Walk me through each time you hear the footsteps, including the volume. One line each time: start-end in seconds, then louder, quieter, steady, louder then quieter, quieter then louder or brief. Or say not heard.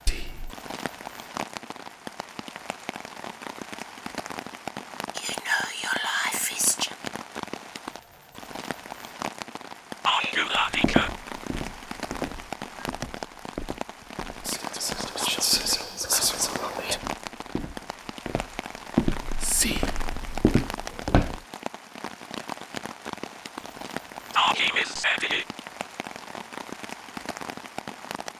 10.6-21.4 quieter then louder.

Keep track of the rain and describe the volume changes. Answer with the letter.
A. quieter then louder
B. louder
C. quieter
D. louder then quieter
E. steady
E.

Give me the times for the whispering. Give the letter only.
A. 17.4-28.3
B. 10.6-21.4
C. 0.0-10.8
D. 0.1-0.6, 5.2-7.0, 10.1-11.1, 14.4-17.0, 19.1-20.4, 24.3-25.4
D.